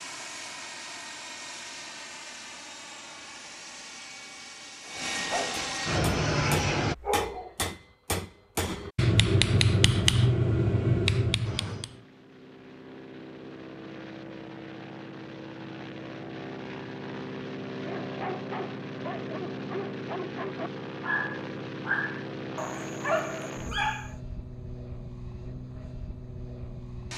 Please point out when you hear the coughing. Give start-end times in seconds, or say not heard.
not heard.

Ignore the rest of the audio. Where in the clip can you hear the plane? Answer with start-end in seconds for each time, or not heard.
0.0-7.0, 11.4-27.1.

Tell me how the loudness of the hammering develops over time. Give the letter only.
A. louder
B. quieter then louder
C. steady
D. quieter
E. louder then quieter
A.